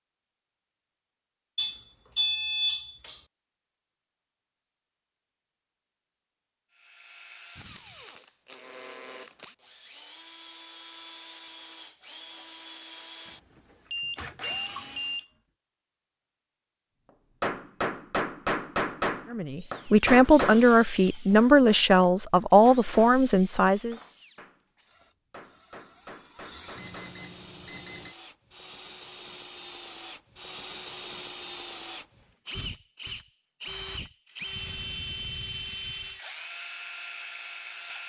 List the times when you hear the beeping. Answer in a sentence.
The beeping can be heard from 1.6 to 3.1 s, from 13.9 to 15.3 s and from 26.8 to 28.1 s.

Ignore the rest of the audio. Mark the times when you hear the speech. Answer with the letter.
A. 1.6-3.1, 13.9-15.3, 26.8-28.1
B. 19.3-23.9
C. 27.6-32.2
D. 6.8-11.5
B.